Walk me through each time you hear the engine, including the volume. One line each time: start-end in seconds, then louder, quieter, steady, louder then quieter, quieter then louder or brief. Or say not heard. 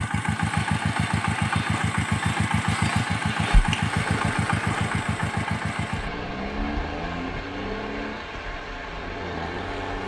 0.0-10.0 quieter.